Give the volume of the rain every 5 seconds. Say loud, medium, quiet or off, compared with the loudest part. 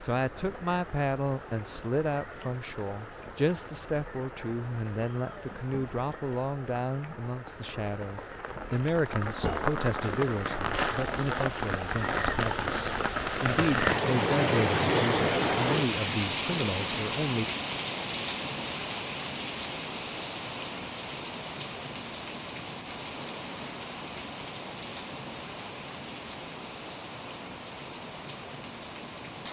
quiet, medium, loud, loud, medium, medium.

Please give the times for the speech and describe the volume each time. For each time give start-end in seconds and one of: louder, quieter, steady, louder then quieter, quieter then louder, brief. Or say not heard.
0.0-17.5 steady.